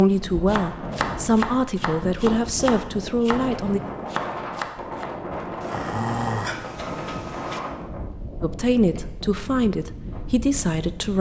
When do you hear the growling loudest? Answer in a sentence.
The volume of the growling peaks at 6 seconds.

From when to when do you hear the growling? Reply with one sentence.
You can hear the growling from 5.6 to 7.6 s.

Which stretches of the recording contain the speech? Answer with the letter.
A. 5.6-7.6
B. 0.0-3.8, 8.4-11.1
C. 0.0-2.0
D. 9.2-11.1
B.